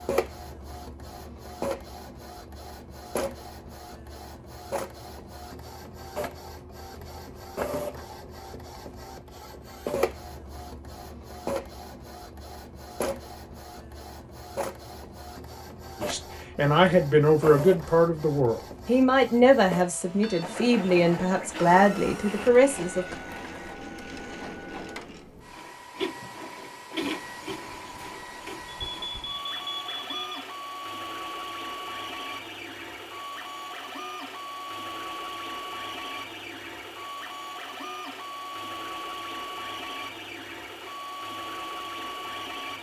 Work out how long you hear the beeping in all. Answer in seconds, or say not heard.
2 s.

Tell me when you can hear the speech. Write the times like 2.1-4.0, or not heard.
16.0-23.1.